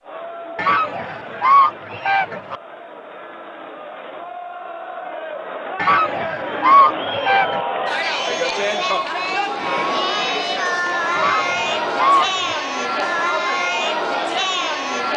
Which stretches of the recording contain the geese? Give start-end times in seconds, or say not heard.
0.6-2.5, 5.8-7.6, 11.2-12.6.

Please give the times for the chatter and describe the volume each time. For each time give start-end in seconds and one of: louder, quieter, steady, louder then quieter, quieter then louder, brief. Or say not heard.
0.0-15.1 louder.